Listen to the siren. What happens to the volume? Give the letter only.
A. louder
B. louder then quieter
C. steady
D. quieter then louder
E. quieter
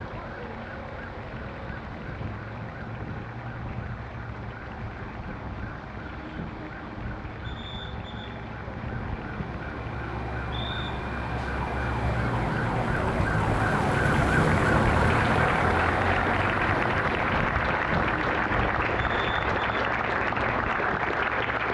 B.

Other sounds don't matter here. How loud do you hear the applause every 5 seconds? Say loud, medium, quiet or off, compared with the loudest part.
quiet, quiet, medium, loud, loud.